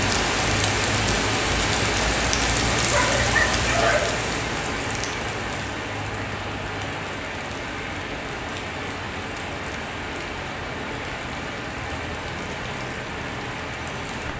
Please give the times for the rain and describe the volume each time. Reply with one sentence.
You can hear the rain from 0.0 to 14.3 s, getting quieter.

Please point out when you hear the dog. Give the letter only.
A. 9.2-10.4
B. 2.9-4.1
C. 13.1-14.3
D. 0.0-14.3
B.